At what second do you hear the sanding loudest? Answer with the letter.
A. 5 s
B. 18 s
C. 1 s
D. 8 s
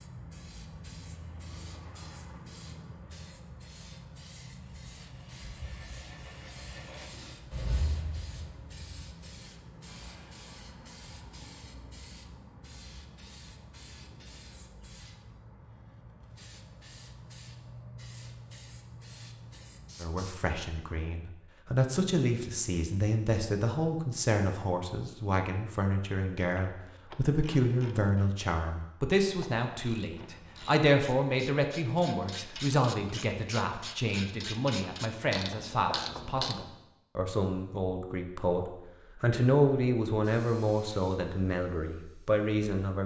D.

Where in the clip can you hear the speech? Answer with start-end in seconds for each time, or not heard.
20.0-43.0.